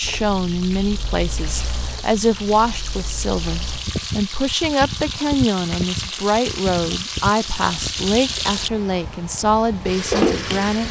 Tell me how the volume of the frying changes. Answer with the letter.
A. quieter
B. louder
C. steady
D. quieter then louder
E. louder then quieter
B.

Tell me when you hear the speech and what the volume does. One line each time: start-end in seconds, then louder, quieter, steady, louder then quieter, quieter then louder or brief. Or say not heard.
0.0-10.8 steady.